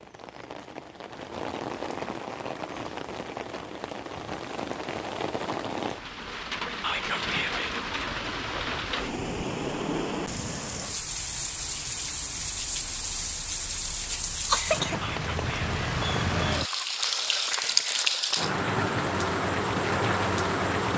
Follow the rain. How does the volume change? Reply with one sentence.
The loudness of the rain goes up.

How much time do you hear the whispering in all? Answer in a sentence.
You can hear the whispering for 2 seconds altogether.